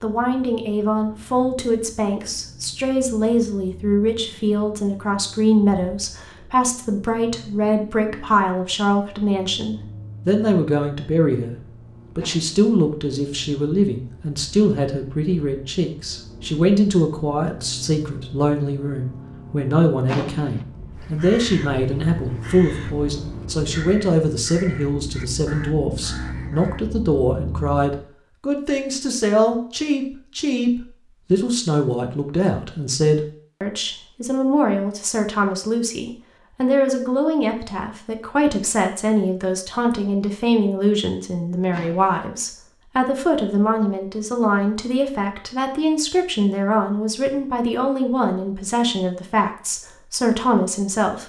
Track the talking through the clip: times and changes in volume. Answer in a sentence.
You can hear the talking from 0.0 to 51.2 s, at a steady volume.